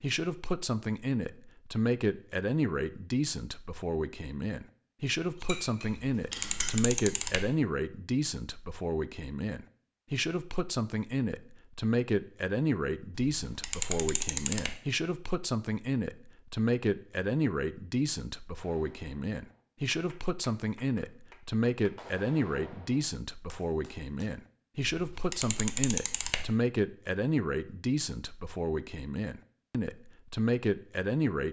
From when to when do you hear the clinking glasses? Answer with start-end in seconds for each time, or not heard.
5.2-6.8.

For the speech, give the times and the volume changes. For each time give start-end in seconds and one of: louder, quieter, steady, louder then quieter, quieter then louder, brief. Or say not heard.
0.0-31.4 steady.